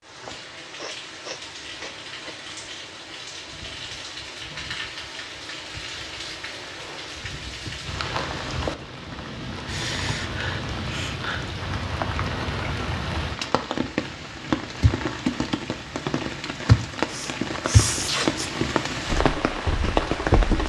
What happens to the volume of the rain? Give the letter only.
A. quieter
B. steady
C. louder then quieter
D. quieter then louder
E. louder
E.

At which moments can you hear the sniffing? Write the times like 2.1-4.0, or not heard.
0.8-2.4, 9.7-11.6, 17.1-18.5.